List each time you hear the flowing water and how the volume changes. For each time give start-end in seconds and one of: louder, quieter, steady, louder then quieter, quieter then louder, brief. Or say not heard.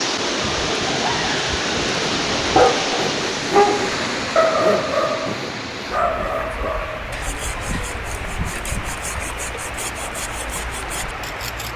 0.0-11.7 quieter.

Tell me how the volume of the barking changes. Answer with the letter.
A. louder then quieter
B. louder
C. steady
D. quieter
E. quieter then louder
E.